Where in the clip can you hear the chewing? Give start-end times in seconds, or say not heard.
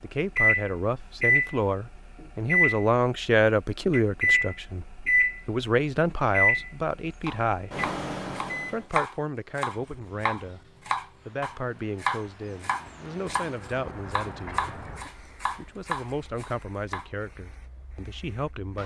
not heard.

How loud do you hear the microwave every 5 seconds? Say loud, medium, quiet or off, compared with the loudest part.
loud, loud, off, off.